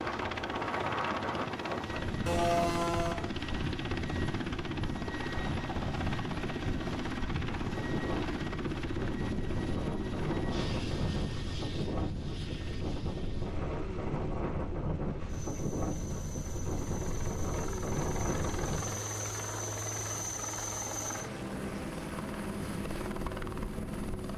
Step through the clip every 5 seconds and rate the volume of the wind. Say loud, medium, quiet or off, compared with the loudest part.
loud, loud, loud, loud, off.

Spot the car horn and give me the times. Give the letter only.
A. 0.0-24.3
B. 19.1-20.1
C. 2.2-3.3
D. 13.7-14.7
C.